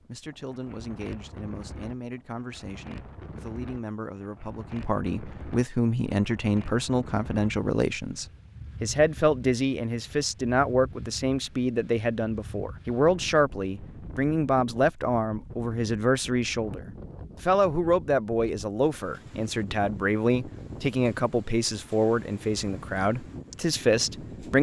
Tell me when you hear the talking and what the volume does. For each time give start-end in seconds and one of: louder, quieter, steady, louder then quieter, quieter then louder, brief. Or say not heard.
0.1-24.5 louder.